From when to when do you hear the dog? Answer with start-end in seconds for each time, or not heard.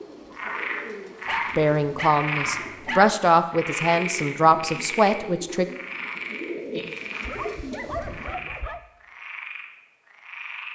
1.2-3.1, 7.2-8.8.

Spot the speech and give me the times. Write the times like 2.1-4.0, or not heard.
1.6-5.7.